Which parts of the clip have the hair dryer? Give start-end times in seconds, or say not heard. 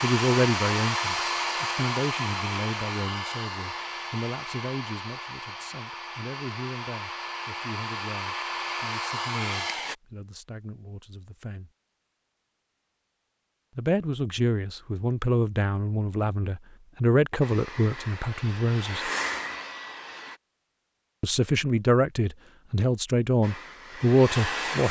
0.0-9.9, 17.4-20.4, 23.4-24.8.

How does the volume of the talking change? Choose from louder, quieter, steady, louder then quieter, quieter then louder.
quieter then louder.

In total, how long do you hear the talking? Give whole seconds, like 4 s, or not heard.
21 s.